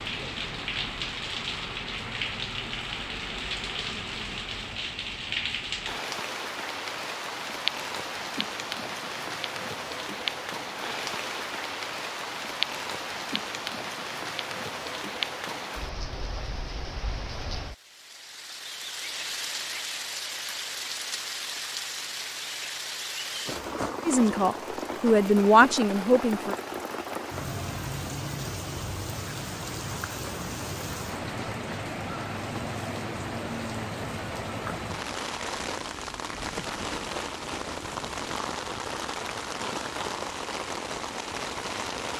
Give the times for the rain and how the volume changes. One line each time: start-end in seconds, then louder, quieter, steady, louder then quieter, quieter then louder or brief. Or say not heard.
0.0-42.1 steady.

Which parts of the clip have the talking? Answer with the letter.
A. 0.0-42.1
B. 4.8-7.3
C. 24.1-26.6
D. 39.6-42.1
C.